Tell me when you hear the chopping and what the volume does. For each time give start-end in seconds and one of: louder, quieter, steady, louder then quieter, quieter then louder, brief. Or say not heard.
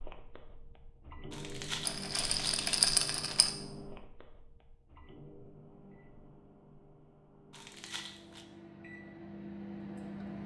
not heard.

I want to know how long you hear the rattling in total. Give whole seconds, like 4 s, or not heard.
2 s.